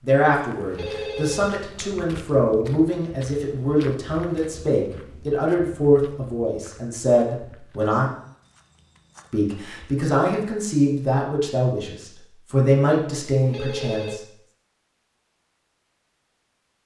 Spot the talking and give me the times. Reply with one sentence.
You can hear the talking from 0.0 to 8.1 s and from 9.3 to 14.2 s.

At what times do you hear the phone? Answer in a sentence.
The phone can be heard from 0.5 to 1.5 s and from 13.2 to 14.2 s.